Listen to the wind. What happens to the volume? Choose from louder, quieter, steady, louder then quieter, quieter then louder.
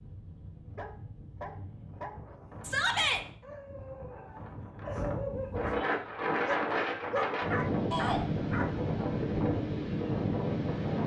louder.